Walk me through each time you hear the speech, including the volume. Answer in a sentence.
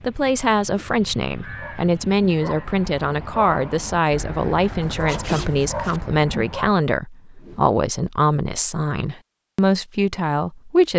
The speech can be heard from 0.0 to 10.9 s, at a steady volume.